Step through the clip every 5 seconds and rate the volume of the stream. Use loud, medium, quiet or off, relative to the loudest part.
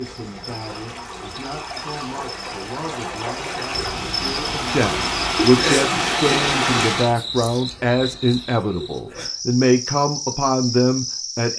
medium, loud, off.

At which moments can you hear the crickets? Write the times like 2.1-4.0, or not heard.
0.0-11.5.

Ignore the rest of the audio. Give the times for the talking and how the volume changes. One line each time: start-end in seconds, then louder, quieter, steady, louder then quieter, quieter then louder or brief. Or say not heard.
0.0-11.5 louder.